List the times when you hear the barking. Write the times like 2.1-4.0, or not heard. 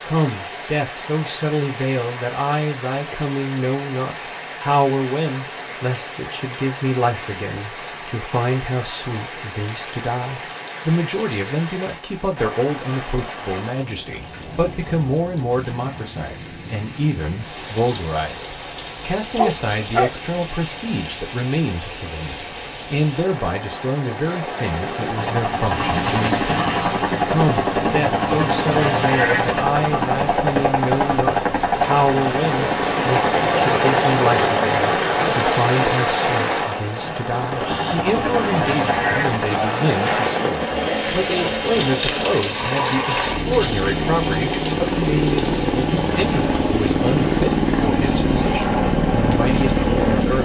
19.4-20.2.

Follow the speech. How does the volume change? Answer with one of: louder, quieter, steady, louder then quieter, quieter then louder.
steady.